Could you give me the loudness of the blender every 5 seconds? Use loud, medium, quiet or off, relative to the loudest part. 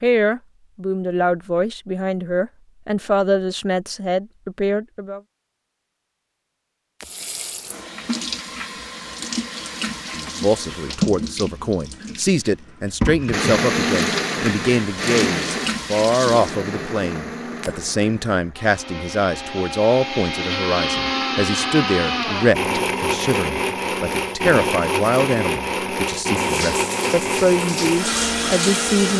off, off, loud, medium, loud, loud.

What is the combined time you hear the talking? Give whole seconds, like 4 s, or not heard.
24 s.